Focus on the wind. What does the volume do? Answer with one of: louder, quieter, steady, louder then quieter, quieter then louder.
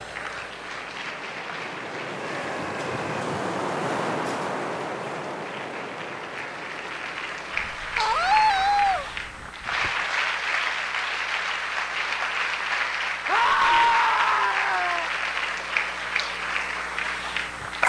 louder then quieter.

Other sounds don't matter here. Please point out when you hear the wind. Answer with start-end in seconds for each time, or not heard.
0.0-10.1.